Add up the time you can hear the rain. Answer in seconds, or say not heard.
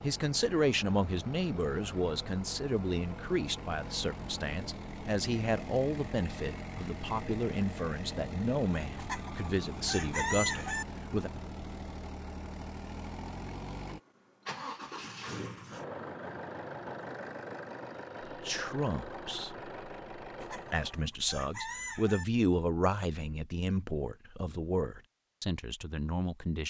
not heard.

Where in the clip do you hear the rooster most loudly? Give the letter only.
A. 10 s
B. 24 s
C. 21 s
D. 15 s
A.